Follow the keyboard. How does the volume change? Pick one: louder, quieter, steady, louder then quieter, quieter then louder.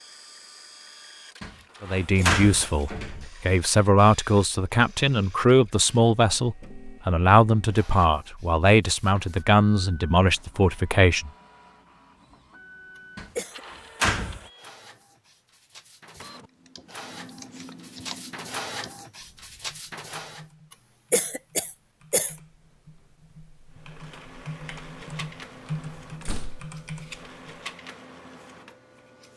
quieter then louder.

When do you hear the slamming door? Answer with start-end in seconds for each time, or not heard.
1.4-3.2, 13.2-14.4, 26.2-26.7.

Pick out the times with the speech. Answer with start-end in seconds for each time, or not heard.
1.8-11.3.